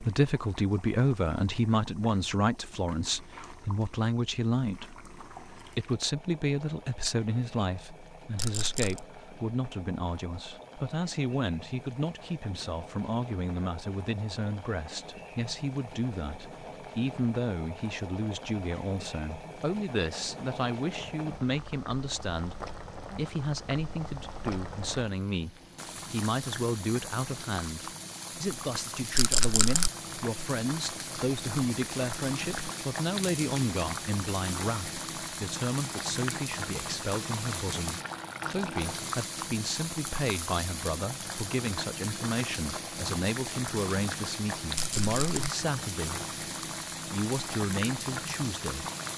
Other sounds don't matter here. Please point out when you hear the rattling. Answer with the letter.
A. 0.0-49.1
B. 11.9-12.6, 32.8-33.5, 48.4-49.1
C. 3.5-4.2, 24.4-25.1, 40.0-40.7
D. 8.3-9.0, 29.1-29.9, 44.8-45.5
D.